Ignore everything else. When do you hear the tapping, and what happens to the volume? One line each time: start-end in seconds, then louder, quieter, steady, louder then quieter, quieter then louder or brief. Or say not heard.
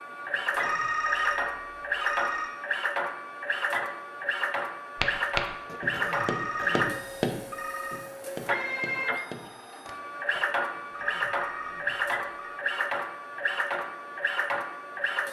5.0-10.5 quieter.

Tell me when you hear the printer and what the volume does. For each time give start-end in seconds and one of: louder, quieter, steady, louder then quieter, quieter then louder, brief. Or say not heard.
0.0-15.2 steady.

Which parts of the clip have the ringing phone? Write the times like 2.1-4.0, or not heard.
0.6-2.5, 6.0-8.0, 11.2-12.6.